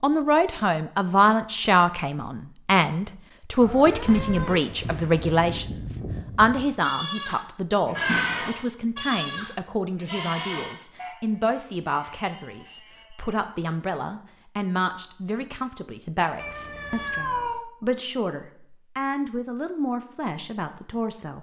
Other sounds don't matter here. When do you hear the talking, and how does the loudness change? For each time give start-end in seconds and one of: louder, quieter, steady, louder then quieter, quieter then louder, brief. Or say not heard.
0.0-21.3 quieter.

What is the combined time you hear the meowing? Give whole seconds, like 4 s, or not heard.
3 s.